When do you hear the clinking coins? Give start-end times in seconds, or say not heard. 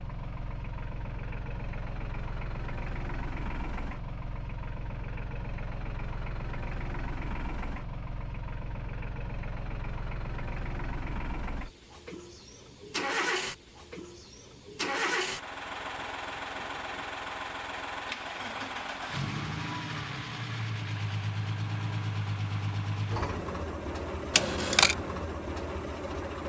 24.3-24.9.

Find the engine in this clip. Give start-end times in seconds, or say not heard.
0.0-26.4.